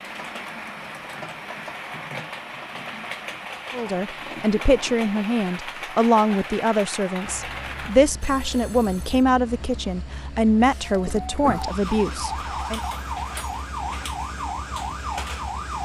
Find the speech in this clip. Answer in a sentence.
You can hear the speech from 3.7 to 12.8 s.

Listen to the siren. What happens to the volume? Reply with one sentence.
The volume of the siren stays about the same.